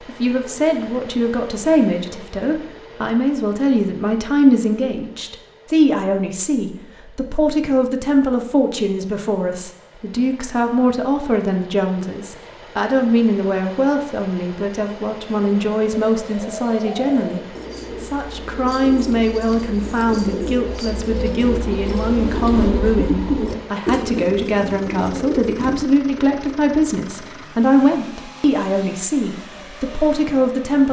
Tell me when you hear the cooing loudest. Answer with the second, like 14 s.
23 s.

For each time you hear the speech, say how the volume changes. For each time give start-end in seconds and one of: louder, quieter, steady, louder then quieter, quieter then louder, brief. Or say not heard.
0.1-30.8 steady.